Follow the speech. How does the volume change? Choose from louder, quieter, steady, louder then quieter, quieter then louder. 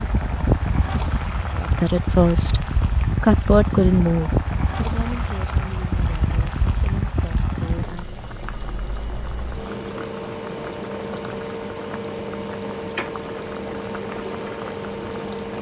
quieter.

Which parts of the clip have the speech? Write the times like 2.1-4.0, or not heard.
1.6-8.2.